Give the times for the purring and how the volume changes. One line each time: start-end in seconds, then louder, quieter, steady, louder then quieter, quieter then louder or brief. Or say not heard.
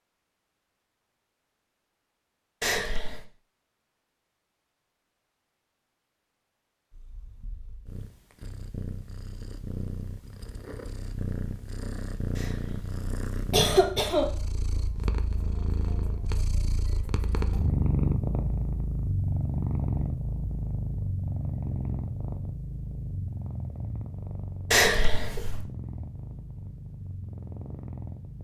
6.9-28.4 louder then quieter.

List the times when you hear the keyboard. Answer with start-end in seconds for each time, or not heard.
not heard.